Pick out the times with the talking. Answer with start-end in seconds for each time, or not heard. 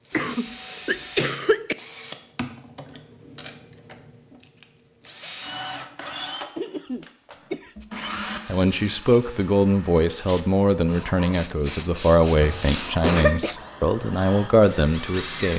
8.4-15.5.